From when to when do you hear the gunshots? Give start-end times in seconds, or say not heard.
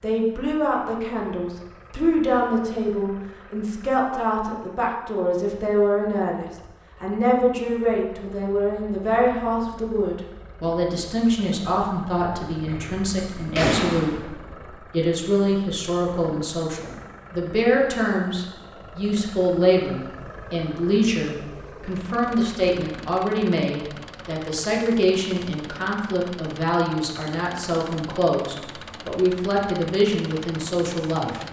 12.7-14.2.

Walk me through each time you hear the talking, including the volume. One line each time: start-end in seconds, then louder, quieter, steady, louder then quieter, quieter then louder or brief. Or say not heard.
0.0-31.4 steady.